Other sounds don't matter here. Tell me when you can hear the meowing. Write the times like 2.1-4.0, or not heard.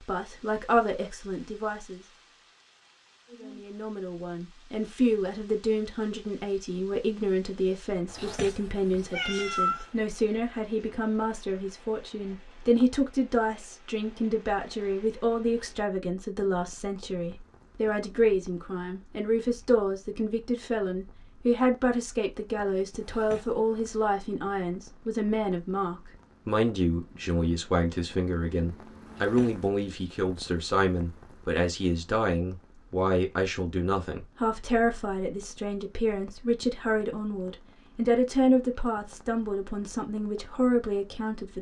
8.1-9.9, 23.0-24.1, 29.1-30.0.